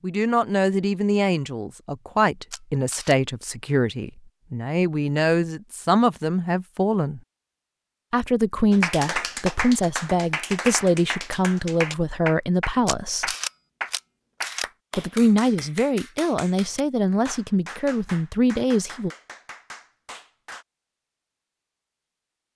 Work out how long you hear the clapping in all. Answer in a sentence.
The clapping can be heard for 12 seconds in total.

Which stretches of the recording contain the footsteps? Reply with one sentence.
The footsteps can't be heard in this clip.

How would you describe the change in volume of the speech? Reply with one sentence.
The loudness of the speech stays about the same.